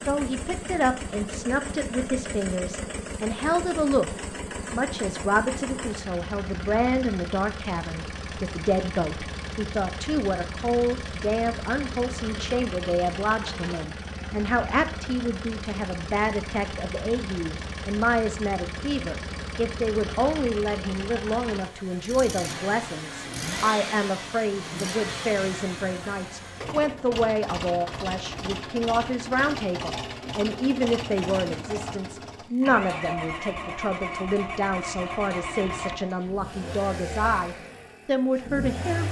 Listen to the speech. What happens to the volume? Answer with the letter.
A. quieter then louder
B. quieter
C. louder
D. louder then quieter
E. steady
E.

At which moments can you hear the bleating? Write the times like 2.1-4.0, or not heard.
not heard.